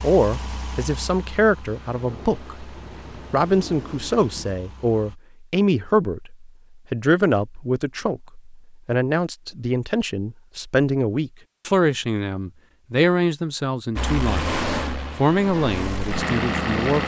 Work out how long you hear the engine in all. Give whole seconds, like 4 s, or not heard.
8 s.